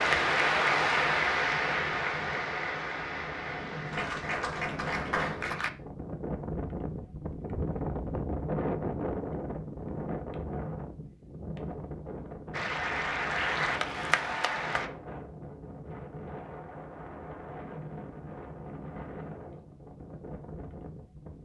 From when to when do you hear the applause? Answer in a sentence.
The applause can be heard from 0.0 to 5.7 s and from 12.5 to 14.9 s.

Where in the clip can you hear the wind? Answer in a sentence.
You can hear the wind from 0.0 to 21.3 s.